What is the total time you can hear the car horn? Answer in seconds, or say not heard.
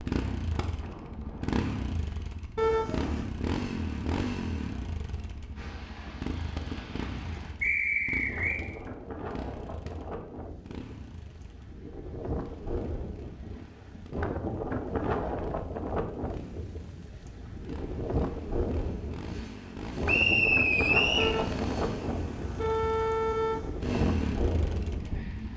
3 s.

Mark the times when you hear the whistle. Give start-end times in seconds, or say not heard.
7.6-8.6, 20.1-21.4.